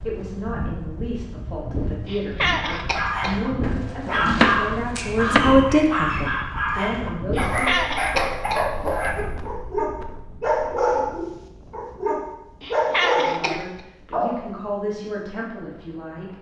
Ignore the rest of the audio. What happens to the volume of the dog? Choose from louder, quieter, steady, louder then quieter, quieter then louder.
steady.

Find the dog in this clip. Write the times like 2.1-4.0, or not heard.
2.6-14.3.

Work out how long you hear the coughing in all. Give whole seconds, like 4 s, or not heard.
4 s.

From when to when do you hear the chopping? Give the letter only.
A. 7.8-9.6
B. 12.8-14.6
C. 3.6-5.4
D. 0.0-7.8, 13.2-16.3
C.